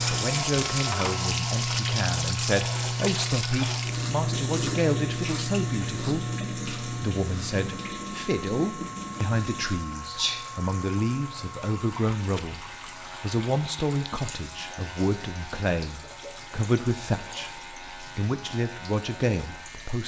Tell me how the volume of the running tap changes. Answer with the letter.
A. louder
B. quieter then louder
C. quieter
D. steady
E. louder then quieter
C.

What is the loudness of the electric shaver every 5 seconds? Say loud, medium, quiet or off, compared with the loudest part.
loud, medium, medium, quiet.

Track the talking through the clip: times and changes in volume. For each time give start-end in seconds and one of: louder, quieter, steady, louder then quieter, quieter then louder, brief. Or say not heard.
0.1-20.0 steady.